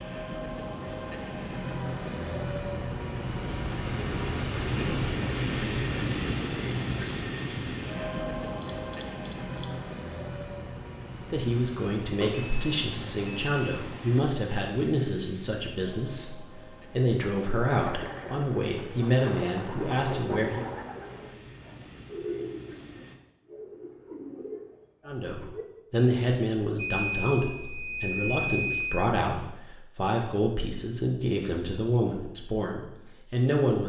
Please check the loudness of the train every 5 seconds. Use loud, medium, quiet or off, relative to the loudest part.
loud, loud, medium, quiet, quiet, off, off.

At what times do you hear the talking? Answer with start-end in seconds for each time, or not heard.
11.3-20.6, 25.1-33.8.